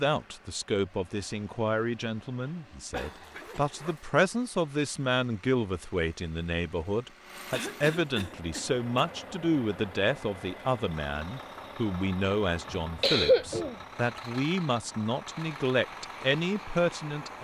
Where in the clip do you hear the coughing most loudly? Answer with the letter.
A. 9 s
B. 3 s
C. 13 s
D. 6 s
C.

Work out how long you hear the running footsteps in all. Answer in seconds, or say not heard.
not heard.